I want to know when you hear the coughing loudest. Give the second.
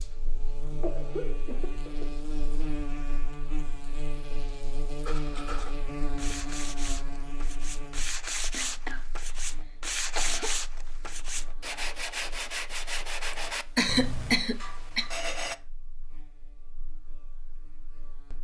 14 s.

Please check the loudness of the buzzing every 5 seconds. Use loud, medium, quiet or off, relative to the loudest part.
loud, loud, quiet, quiet.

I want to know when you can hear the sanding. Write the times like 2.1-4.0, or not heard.
5.0-15.6.